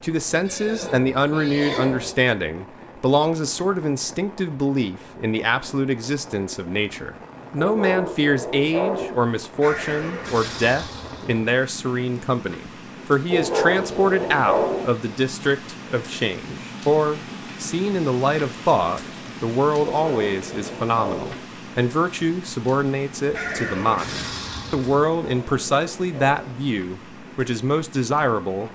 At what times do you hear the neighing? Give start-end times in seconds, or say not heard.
0.5-2.1, 9.6-11.4, 23.3-25.1.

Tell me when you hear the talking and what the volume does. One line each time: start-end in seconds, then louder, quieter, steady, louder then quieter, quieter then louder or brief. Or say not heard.
0.0-28.6 steady.